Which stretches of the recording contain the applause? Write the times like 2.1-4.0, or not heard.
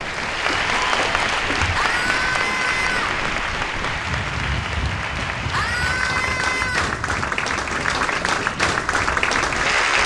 0.0-10.0.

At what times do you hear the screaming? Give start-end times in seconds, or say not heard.
1.8-3.2, 5.5-7.0.